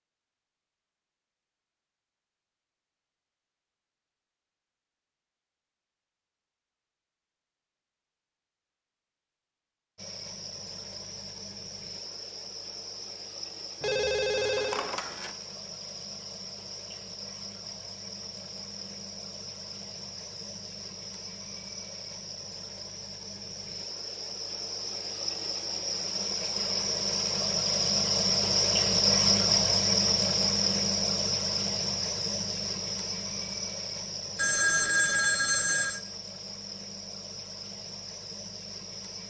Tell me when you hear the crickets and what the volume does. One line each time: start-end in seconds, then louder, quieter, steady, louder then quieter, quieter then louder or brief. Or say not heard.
9.9-39.2 louder then quieter.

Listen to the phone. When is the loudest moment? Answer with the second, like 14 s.
35 s.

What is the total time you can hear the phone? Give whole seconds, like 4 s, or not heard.
3 s.